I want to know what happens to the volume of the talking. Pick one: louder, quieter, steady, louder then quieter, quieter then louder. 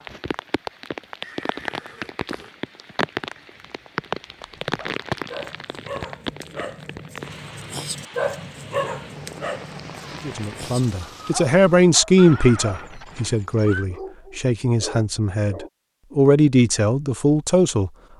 quieter then louder.